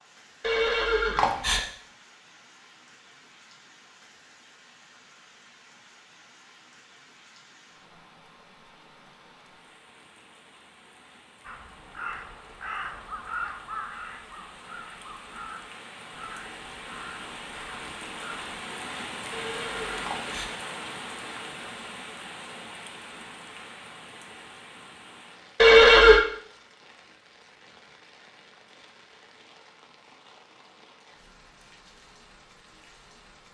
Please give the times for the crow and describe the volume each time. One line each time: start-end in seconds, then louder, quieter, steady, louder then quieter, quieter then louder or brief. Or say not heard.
11.4-18.6 quieter.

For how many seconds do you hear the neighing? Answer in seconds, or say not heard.
3 s.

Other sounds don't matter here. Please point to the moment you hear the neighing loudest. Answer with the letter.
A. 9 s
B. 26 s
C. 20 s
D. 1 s
B.